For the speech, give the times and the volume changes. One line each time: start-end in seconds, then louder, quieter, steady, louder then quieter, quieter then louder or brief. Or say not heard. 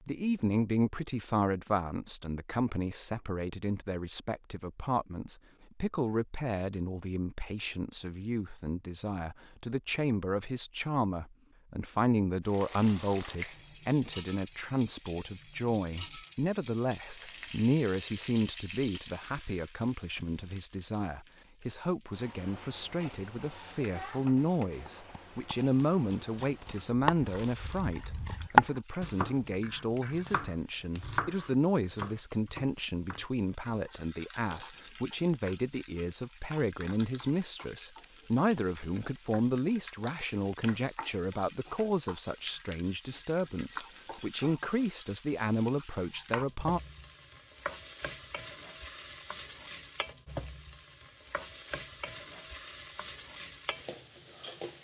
0.1-46.8 steady.